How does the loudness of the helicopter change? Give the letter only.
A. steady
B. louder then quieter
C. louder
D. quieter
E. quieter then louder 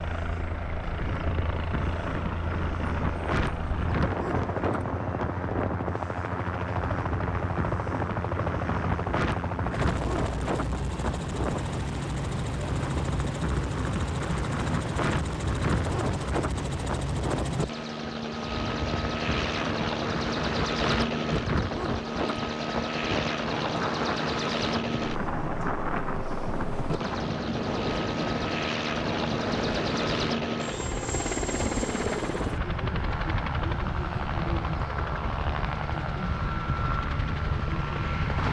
A.